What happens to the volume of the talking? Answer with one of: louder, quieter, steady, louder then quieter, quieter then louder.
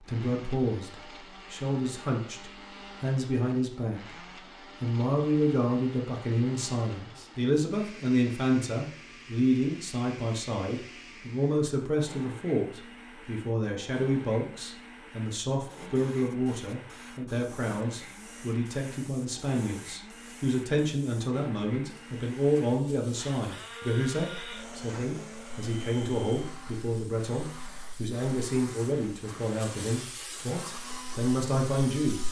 steady.